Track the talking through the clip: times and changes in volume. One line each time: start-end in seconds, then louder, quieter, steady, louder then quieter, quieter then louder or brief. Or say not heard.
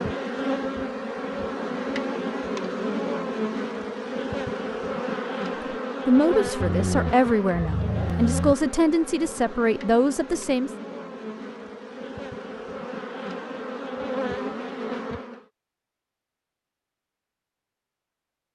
6.0-10.7 steady.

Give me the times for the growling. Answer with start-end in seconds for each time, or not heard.
6.6-8.6.